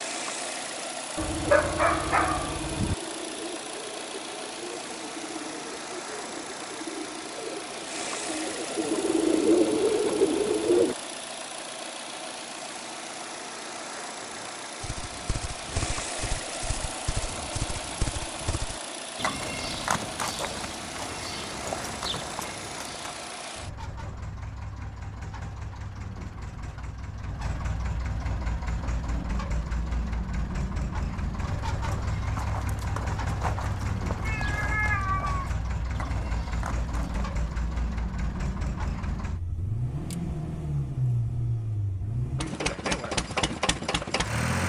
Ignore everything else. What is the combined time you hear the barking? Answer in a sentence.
You can hear the barking for 2 seconds altogether.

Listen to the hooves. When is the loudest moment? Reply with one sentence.
The loudest moment of the hooves is at 20 seconds.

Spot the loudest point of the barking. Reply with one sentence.
The loudest moment of the barking is at 2 seconds.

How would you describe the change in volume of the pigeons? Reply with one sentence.
The loudness of the pigeons goes up.